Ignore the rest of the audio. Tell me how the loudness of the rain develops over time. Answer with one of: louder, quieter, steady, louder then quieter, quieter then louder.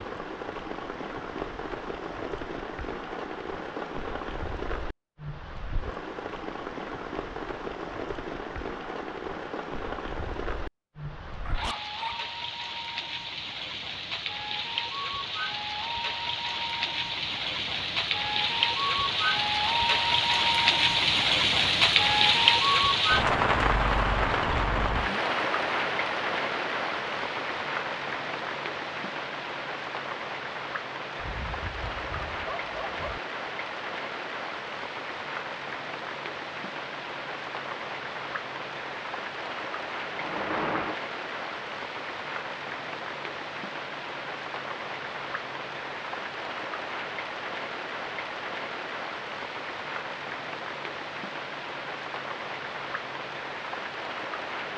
louder then quieter.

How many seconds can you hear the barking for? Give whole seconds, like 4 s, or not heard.
3 s.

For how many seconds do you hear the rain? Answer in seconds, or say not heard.
55 s.